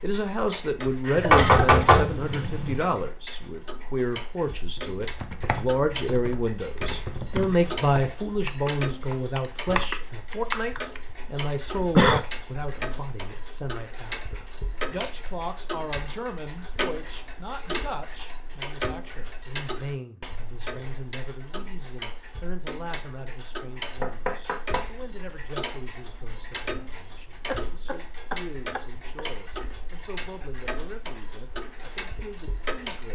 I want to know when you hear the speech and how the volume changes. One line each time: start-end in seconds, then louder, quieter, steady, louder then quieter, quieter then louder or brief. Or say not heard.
0.0-33.0 quieter.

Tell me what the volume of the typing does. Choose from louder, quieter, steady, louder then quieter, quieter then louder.
louder.